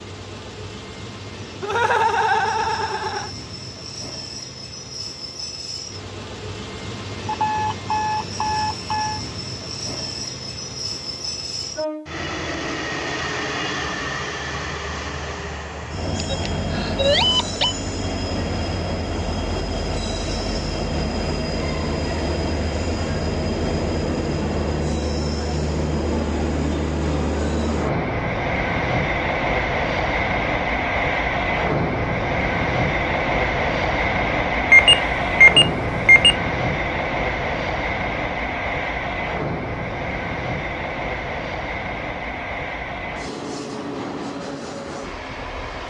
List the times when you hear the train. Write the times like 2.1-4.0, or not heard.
0.0-45.8.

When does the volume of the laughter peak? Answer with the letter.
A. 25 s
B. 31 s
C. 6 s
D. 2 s
D.